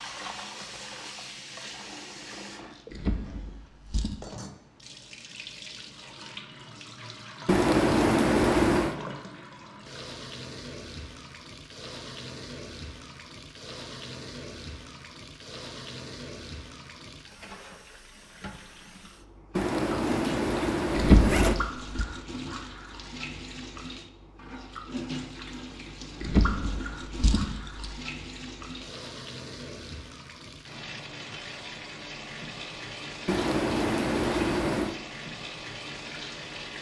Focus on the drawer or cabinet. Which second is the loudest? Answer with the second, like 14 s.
21 s.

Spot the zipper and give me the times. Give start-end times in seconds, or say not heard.
7.5-8.9, 19.6-21.6, 33.2-35.0.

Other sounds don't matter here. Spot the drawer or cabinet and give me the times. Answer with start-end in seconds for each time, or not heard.
2.9-4.2, 20.9-22.1, 26.2-27.9.